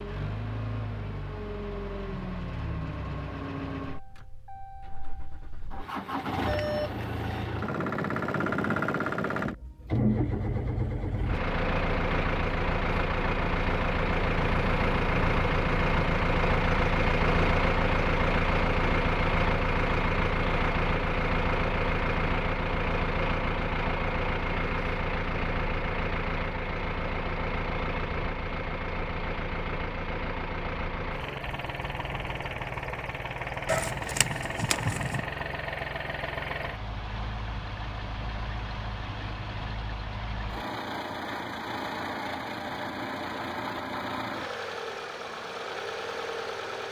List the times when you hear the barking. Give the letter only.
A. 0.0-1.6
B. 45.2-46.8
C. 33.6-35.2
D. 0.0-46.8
C.